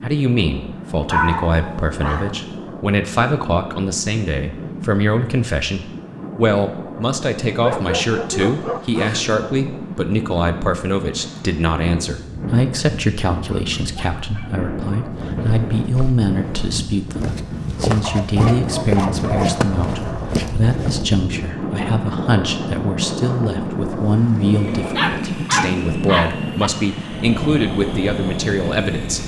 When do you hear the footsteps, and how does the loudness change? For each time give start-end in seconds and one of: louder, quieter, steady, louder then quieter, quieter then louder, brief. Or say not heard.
15.1-21.1 louder.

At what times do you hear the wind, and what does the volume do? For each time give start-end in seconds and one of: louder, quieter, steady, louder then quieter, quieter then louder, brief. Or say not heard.
0.0-29.2 louder.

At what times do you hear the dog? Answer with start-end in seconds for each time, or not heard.
1.1-2.4, 7.6-9.3, 13.4-15.2, 18.0-19.7, 24.6-26.7.